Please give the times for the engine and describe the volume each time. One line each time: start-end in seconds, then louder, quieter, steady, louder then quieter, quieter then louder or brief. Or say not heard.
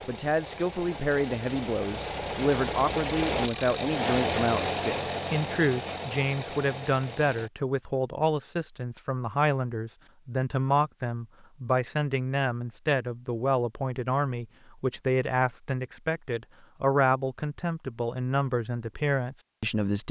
0.0-7.5 louder then quieter.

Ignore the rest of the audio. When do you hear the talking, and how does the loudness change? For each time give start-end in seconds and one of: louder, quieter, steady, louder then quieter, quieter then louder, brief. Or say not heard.
0.1-20.0 steady.